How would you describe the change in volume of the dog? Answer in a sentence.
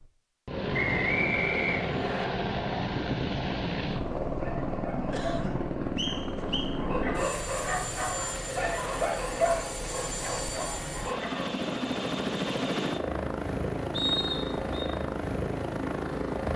The loudness of the dog goes up, then down.